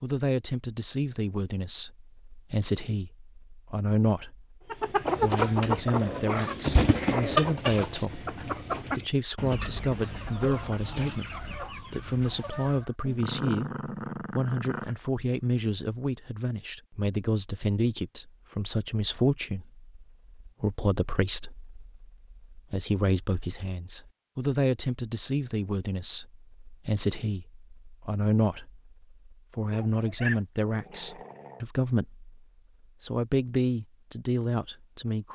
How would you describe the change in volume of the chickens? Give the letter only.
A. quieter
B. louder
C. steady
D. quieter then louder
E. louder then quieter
A.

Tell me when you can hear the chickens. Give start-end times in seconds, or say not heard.
4.7-12.9.